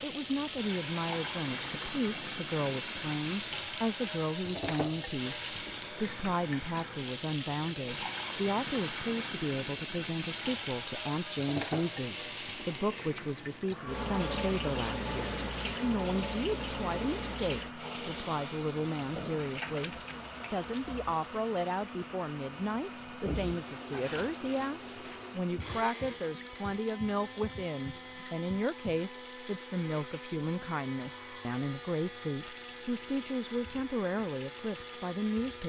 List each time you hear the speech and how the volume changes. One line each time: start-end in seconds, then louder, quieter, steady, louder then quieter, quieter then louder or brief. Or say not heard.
0.0-35.6 steady.